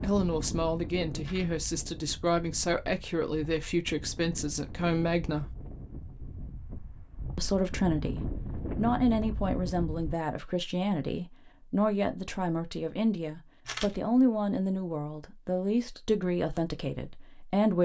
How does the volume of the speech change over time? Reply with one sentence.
The loudness of the speech stays about the same.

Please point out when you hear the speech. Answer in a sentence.
The speech can be heard from 0.0 to 5.5 s and from 7.3 to 17.8 s.